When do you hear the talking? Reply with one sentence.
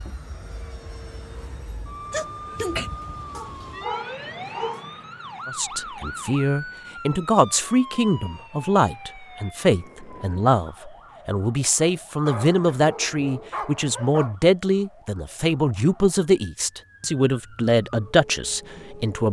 You can hear the talking from 5.5 to 19.2 s.